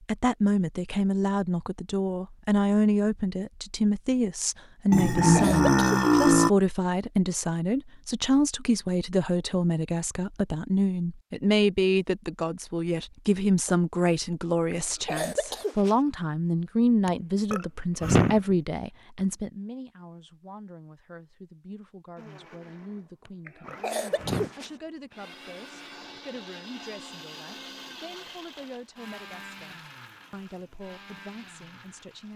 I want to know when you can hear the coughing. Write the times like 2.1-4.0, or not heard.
5.0-6.2, 14.7-15.9, 23.4-24.7.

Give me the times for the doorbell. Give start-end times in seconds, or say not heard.
not heard.